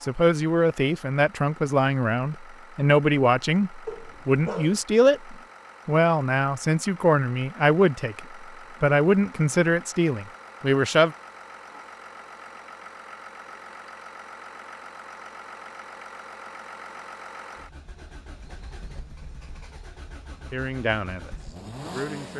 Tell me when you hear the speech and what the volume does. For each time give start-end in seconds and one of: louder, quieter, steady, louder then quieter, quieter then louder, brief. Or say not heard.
0.0-11.2 steady
20.5-22.3 brief.